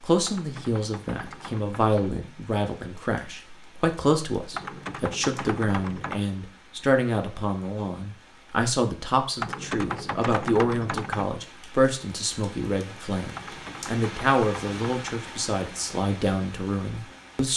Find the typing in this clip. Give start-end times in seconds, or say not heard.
0.2-2.1, 4.5-6.2, 9.3-11.3, 13.3-15.2.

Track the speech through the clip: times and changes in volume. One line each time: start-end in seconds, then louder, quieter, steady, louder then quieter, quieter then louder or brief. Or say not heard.
0.0-17.5 steady.